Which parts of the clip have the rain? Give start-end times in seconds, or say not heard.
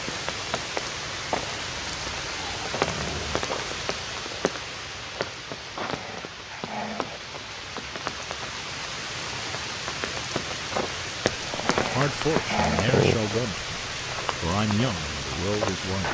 0.0-16.0.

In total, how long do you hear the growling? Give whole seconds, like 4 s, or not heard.
5 s.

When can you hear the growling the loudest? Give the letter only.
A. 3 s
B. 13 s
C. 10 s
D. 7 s
B.